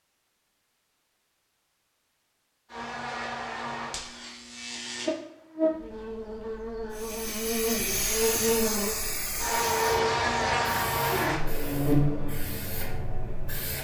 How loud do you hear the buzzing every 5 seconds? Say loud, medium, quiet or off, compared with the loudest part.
medium, loud, loud.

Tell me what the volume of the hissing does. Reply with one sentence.
The volume of the hissing goes down.